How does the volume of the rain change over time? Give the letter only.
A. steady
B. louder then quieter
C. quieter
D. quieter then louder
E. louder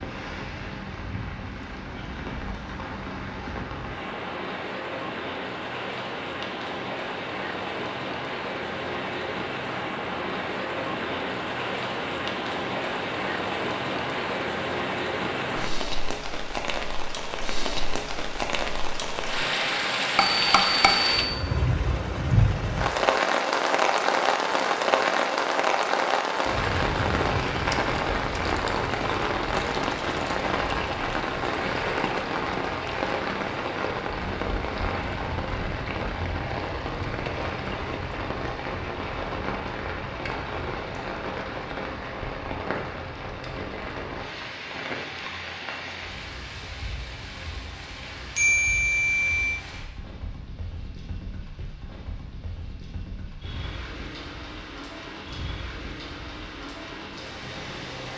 B.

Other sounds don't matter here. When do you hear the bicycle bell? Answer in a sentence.
The bicycle bell can be heard from 20.1 to 21.4 s and from 48.4 to 49.6 s.